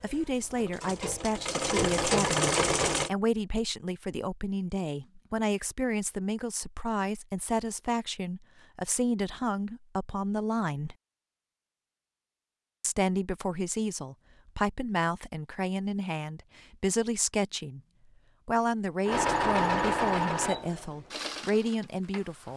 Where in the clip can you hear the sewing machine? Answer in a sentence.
The sewing machine can be heard from 0.0 to 3.1 s and from 19.1 to 22.5 s.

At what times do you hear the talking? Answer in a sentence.
The talking can be heard from 0.0 to 10.9 s, from 12.8 to 17.8 s and from 18.4 to 22.5 s.